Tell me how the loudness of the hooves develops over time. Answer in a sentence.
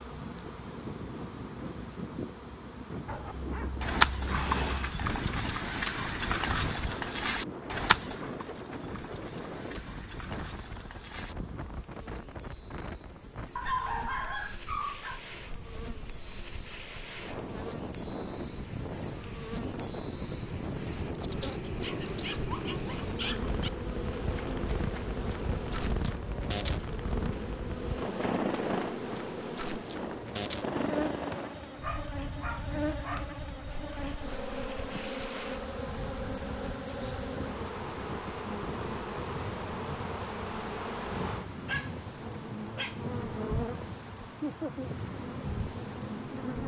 The volume of the hooves goes down.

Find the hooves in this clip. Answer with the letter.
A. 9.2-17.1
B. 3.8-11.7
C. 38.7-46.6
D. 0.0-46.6
B.